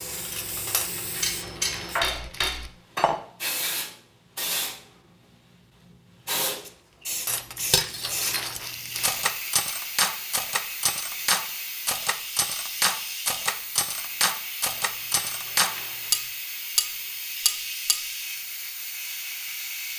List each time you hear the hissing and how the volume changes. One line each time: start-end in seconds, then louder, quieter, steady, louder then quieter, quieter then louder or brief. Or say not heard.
0.0-19.9 steady.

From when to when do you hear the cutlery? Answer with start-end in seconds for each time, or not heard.
0.1-3.2, 7.2-18.1.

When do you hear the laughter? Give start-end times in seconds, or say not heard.
not heard.